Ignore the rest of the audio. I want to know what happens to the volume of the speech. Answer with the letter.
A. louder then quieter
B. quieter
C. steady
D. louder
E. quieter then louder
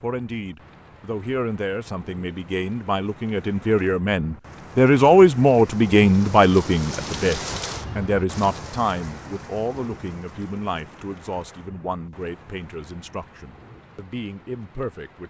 A.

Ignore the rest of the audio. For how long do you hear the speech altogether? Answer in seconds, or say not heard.
15 s.